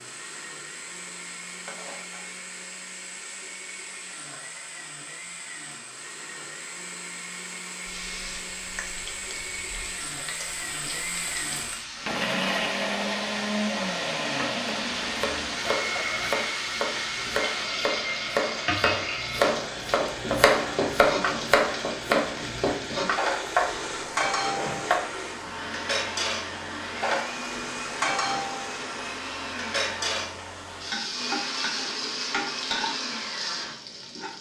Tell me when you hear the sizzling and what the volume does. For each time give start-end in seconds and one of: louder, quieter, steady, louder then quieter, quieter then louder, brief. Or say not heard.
0.0-34.3 louder.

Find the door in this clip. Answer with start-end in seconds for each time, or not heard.
24.6-25.1.